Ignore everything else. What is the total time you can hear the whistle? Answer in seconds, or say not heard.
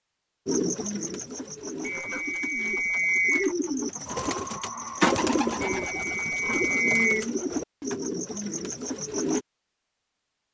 3 s.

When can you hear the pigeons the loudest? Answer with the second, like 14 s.
5 s.